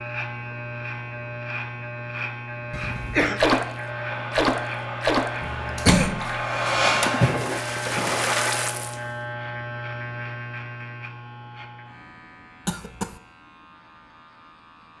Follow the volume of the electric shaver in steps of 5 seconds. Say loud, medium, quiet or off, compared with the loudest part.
loud, loud, medium.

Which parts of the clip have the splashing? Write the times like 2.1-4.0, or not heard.
3.0-9.1.